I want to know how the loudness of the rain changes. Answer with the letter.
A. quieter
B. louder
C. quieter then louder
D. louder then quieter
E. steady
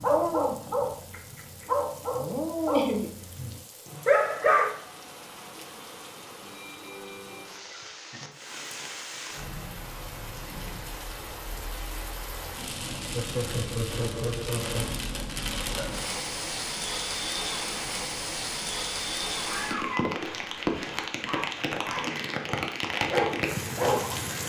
B.